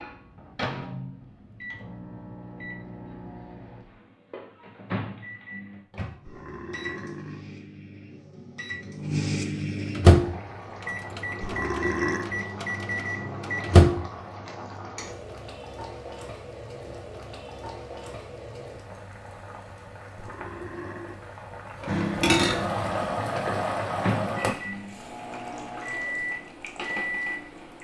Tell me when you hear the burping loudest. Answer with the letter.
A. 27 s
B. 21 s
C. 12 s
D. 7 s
C.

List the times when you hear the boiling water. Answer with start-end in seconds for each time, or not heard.
10.1-27.7.